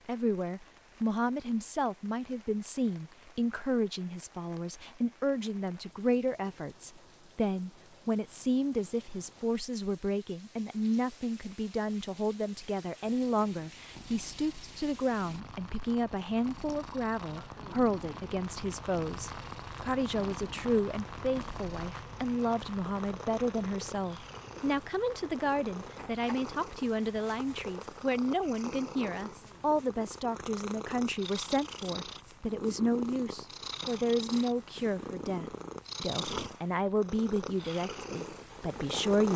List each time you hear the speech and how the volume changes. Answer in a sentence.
The speech can be heard from 0.1 to 39.3 s, at a steady volume.